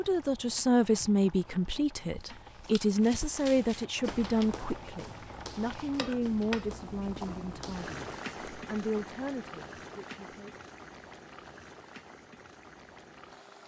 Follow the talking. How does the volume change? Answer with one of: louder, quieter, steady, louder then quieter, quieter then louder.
quieter.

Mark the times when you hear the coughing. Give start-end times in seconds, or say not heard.
not heard.